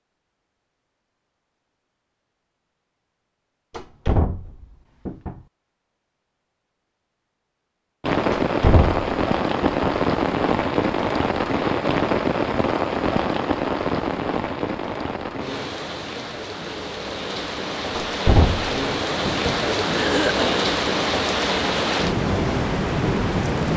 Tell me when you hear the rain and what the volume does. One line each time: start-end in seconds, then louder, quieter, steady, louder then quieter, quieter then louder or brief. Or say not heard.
8.0-23.7 quieter then louder.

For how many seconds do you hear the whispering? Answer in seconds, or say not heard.
not heard.